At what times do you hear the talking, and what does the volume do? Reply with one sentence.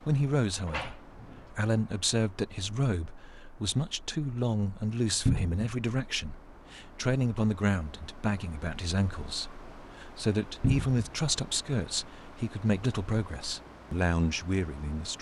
You can hear the talking from 0.0 to 15.1 s, at a steady volume.